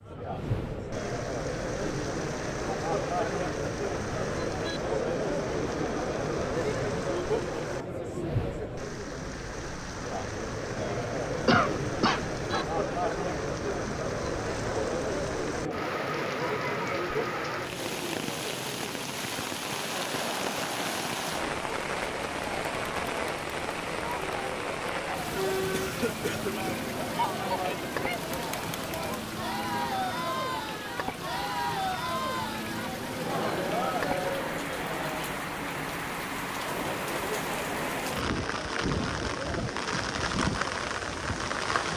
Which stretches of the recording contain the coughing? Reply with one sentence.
You can hear the coughing from 11.4 to 12.7 s and from 25.7 to 26.8 s.